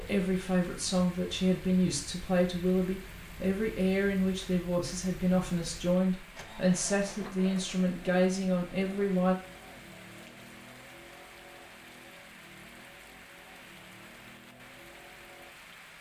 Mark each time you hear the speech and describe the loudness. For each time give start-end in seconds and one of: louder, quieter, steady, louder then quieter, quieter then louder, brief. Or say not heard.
0.0-9.3 steady.